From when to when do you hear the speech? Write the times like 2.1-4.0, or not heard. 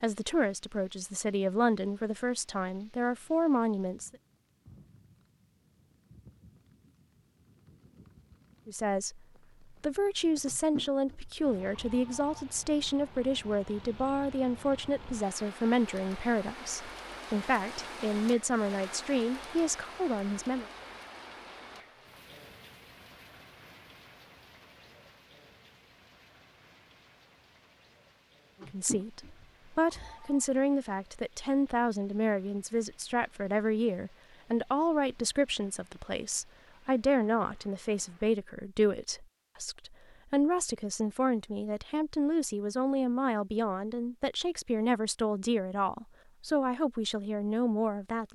0.0-4.2, 8.7-9.2, 9.8-20.6, 28.7-48.3.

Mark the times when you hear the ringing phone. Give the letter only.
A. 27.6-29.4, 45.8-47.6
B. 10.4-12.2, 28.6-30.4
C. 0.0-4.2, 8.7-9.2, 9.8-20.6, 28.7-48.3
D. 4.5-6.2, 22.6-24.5
B.